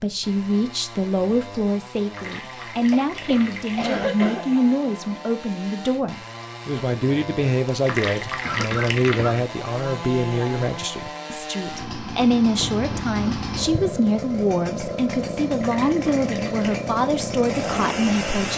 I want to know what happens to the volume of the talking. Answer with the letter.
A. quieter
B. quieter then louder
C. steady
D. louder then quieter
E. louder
C.